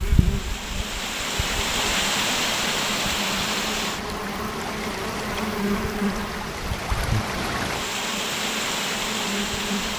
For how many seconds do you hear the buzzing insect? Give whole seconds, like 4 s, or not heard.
10 s.